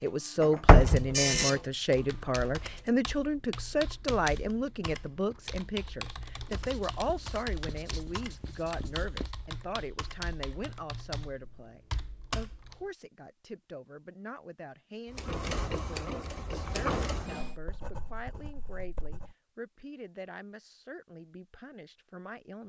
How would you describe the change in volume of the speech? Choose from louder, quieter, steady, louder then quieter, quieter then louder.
quieter.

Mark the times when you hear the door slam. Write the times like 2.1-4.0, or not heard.
0.4-1.4.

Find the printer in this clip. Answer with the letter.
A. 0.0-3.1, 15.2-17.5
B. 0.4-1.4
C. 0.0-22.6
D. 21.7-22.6
A.